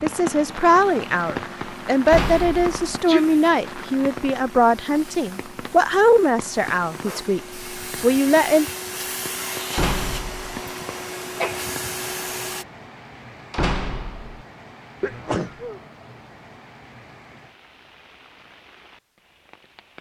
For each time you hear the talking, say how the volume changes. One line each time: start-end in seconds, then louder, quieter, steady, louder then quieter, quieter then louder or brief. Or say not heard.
0.0-8.7 steady.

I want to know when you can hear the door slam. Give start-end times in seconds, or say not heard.
2.0-2.8, 9.7-10.5, 13.5-14.4.